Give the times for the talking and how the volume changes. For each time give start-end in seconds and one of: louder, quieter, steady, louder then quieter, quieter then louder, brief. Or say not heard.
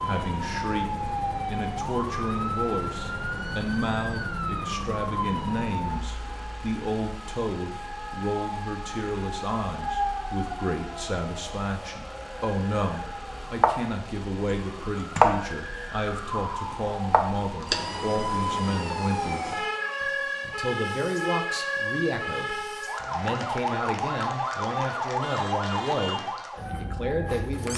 0.0-27.7 steady.